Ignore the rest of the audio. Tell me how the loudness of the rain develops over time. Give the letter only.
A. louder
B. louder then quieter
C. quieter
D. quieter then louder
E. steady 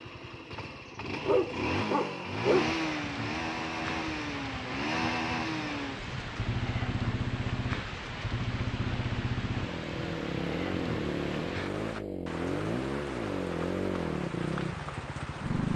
E.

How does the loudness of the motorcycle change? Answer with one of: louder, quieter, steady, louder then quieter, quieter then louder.
steady.